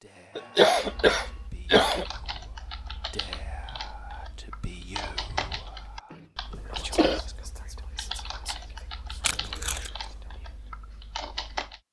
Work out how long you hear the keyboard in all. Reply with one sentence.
The keyboard can be heard for 11 seconds in total.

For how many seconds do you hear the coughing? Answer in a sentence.
You can hear the coughing for 3 seconds altogether.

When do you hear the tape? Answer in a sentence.
You can hear the tape from 9.2 to 9.9 s.